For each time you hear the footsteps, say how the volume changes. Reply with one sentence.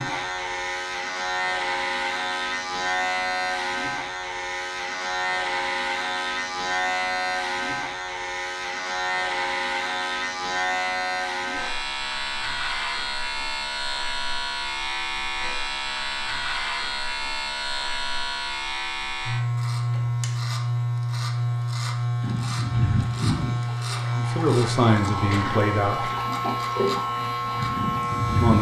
You can't hear the footsteps here.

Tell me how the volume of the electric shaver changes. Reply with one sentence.
The loudness of the electric shaver stays about the same.